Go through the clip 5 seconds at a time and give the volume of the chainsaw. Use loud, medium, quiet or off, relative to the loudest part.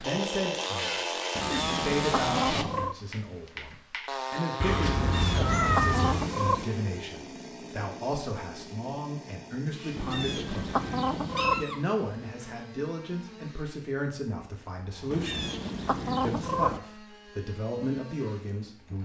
loud, medium, quiet, quiet.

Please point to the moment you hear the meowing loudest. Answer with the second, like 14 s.
6 s.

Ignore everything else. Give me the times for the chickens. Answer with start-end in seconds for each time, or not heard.
1.4-3.0, 5.0-6.7, 9.9-11.7, 15.1-16.8.